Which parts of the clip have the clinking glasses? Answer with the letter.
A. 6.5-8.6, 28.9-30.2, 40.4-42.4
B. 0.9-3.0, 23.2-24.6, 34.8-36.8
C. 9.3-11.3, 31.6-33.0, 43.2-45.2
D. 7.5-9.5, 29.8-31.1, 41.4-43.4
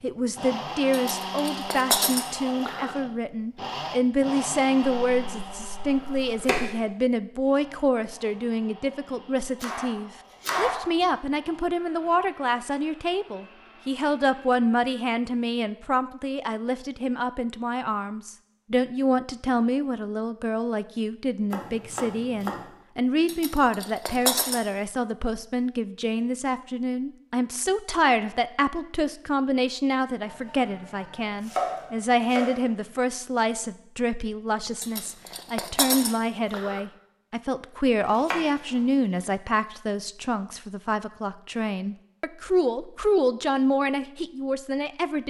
B.